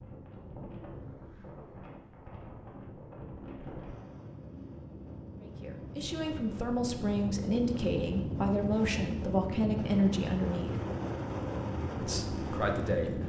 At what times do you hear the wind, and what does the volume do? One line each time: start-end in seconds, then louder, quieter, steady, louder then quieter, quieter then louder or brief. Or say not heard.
0.0-13.2 louder.